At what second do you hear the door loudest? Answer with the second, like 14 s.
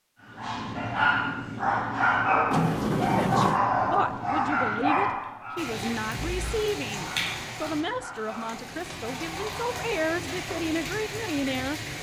3 s.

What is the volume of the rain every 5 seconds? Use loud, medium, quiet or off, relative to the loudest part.
off, loud, loud.